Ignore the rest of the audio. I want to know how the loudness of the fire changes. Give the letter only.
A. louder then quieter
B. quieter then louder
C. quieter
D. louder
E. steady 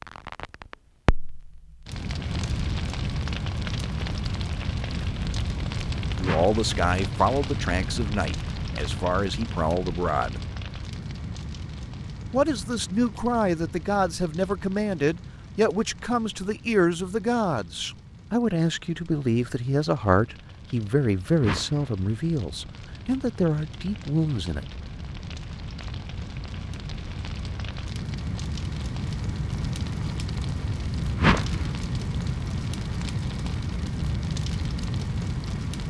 B.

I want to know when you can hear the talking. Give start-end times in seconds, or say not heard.
6.2-10.4, 12.3-24.8.